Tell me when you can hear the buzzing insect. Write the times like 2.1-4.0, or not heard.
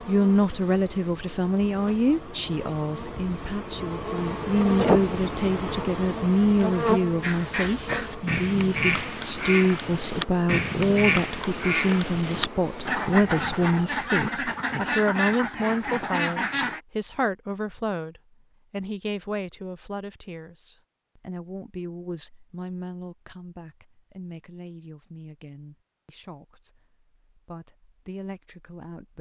0.0-15.0.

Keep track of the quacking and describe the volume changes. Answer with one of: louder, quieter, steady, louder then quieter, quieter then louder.
steady.